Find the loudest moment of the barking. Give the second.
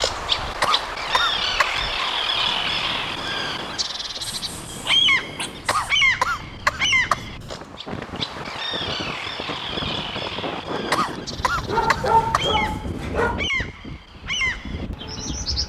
12 s.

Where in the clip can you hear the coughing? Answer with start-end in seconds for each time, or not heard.
0.6-1.8, 5.7-7.7, 10.9-12.9.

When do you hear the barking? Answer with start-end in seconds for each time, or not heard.
4.3-5.7, 11.7-13.4.